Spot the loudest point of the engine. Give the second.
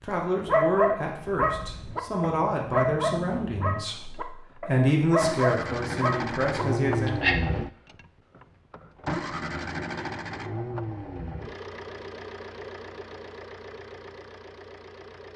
7 s.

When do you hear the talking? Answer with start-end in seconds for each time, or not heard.
0.0-7.2.